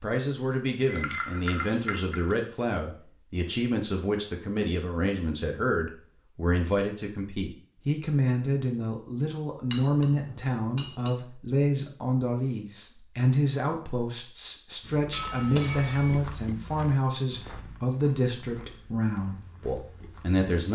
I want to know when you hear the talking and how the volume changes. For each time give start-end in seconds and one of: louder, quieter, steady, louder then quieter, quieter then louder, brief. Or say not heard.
0.0-20.7 steady.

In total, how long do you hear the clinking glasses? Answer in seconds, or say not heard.
4 s.